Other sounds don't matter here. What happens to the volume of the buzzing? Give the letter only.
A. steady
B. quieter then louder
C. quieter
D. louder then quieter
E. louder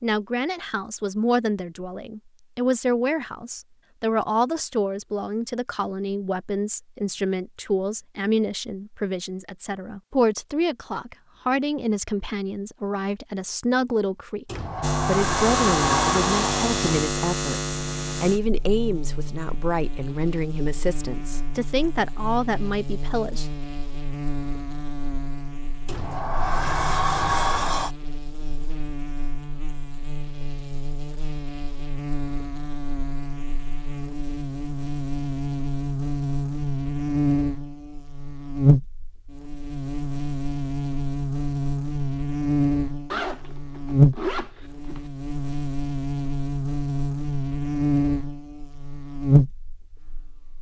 B.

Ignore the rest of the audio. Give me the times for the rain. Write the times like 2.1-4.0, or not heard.
not heard.